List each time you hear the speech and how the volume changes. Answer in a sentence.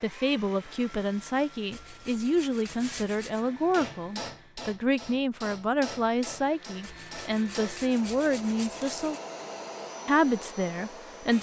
The speech can be heard from 0.0 to 9.2 s, at a steady volume; and briefly from 10.1 to 11.3 s.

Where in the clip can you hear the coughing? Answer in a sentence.
The coughing can't be heard in this clip.